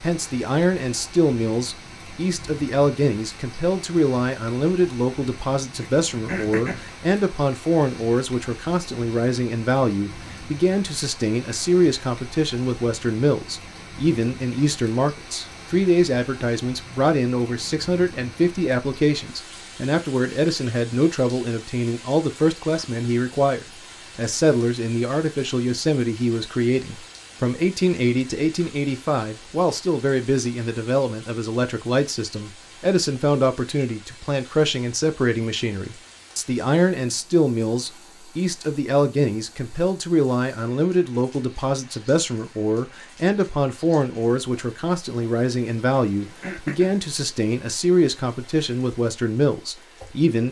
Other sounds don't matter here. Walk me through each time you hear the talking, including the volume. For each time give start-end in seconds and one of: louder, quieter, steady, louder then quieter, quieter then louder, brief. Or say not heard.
0.0-50.4 steady.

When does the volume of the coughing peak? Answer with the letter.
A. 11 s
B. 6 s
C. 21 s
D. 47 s
B.